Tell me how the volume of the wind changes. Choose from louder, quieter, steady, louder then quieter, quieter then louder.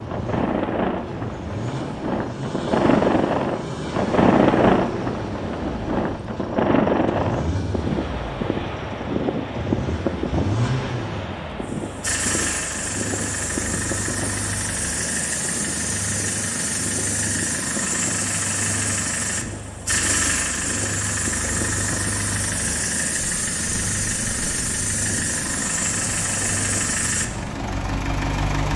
quieter.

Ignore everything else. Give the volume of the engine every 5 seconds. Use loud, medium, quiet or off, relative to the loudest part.
medium, medium, loud, loud, loud, loud.